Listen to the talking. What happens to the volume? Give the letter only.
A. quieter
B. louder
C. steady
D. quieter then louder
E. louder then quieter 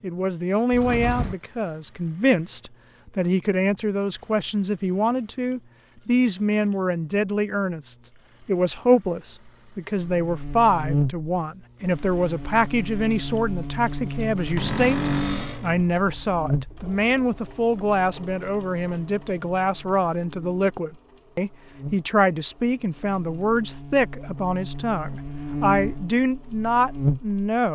C.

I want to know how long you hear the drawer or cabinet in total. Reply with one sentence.
The drawer or cabinet can be heard for 2 seconds in total.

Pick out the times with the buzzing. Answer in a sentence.
The buzzing can be heard from 9.9 to 27.7 s.